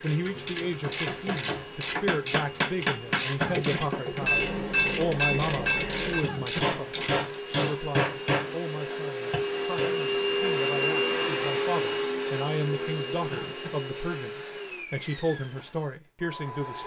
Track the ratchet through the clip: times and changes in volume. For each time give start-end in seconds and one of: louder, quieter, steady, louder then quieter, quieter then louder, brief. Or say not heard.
0.0-7.2 steady.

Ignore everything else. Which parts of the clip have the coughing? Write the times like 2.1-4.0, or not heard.
3.4-4.0, 6.2-6.8, 13.3-13.8.